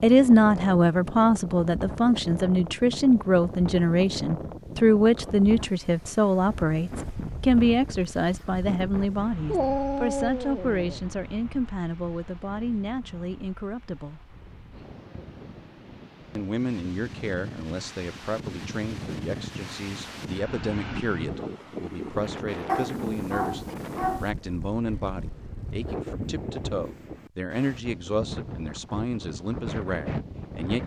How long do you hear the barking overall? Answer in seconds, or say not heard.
3 s.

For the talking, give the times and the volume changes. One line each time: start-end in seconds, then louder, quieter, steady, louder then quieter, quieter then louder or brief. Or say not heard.
0.0-14.2 quieter
16.4-30.8 steady.